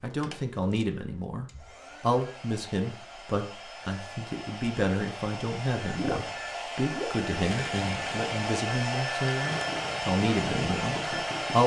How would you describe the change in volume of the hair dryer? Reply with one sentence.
The loudness of the hair dryer goes up.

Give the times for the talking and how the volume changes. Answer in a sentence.
The talking can be heard from 0.0 to 11.6 s, at a steady volume.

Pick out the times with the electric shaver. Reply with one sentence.
You can't hear the electric shaver here.